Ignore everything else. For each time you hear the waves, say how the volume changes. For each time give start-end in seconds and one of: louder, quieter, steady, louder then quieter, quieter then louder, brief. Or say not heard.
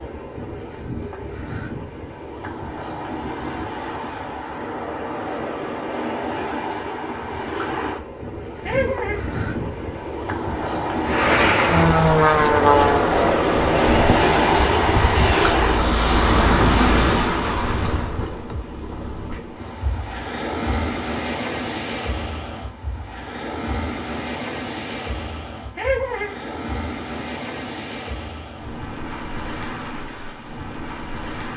0.0-31.5 louder then quieter.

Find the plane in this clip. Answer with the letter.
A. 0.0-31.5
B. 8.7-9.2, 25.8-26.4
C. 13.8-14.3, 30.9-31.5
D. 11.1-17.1
D.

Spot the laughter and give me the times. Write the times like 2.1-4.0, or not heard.
8.7-9.2, 25.8-26.4.